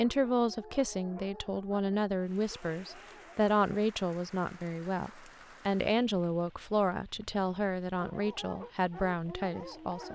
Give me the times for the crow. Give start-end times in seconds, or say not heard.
not heard.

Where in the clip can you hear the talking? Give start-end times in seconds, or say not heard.
0.0-10.0.